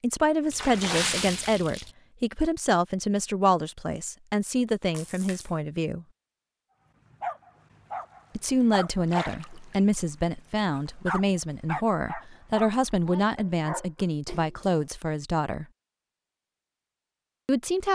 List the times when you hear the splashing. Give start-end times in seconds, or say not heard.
0.5-1.9, 4.9-5.5, 9.1-9.8, 14.2-14.8.